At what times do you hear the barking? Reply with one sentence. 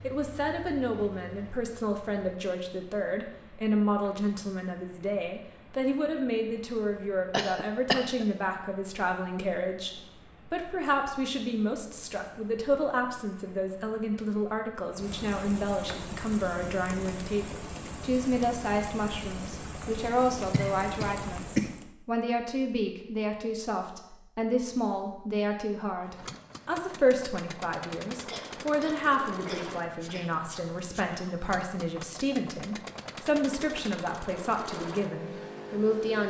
You can't hear the barking here.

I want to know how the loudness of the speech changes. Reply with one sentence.
The loudness of the speech stays about the same.